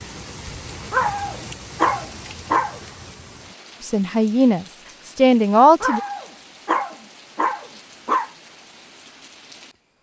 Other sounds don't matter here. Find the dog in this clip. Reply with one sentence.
You can hear the dog from 0.9 to 2.8 s and from 5.8 to 8.3 s.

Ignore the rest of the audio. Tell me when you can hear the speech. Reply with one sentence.
You can hear the speech from 3.8 to 6.0 s.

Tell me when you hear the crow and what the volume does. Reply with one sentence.
The crow can't be heard in this clip.